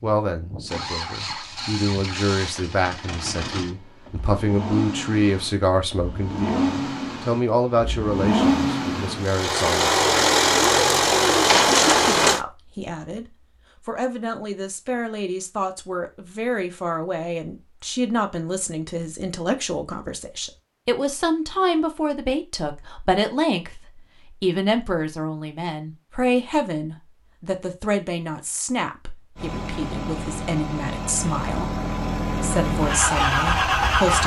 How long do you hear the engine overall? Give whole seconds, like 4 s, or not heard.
17 s.